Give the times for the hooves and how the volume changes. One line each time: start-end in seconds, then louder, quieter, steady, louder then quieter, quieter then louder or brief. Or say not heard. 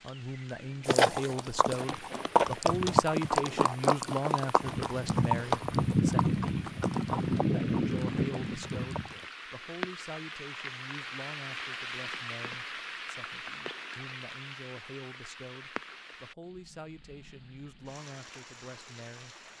0.8-9.2 steady.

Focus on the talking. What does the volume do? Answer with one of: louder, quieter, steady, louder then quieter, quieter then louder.
quieter.